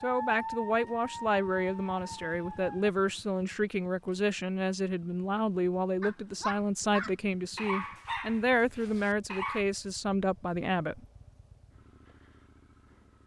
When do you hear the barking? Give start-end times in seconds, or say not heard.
0.0-2.9, 6.0-9.7.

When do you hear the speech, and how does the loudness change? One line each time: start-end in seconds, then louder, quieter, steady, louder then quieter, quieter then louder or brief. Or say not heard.
0.0-11.0 steady.